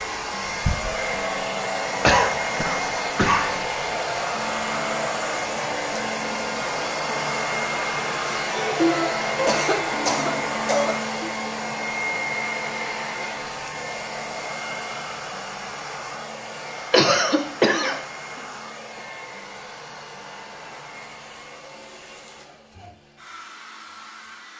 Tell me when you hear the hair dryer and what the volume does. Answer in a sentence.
You can hear the hair dryer from 0.0 to 24.5 s, getting quieter.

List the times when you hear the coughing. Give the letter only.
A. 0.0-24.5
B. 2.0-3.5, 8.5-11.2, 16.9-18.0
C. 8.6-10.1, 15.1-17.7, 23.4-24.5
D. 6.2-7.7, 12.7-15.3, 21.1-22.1
B.